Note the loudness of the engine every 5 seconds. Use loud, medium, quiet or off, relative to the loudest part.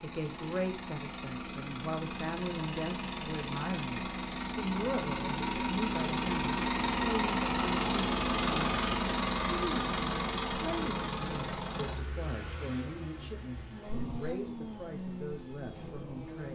medium, loud, medium, quiet.